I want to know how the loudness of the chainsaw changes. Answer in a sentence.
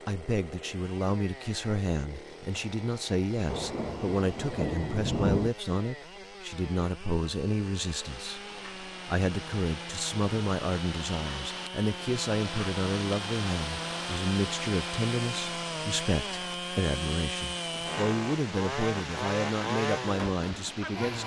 The loudness of the chainsaw goes up.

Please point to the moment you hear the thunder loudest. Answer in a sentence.
The volume of the thunder peaks at 5 seconds.